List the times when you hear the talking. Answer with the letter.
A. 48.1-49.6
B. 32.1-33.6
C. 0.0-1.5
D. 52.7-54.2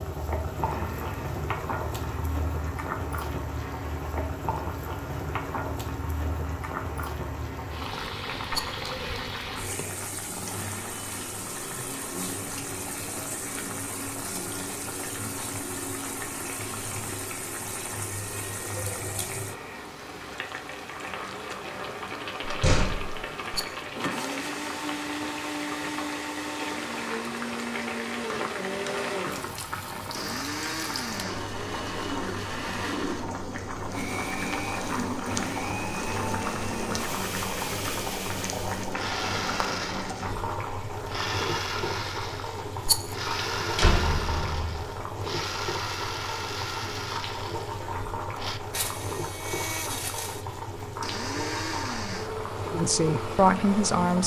D.